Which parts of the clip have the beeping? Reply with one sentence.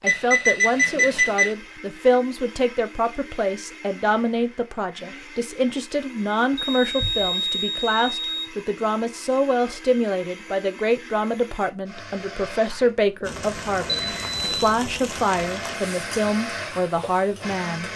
The beeping can be heard from 0.1 to 1.6 s, from 6.5 to 8.4 s and from 13.8 to 14.5 s.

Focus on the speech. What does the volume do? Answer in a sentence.
The volume of the speech stays about the same.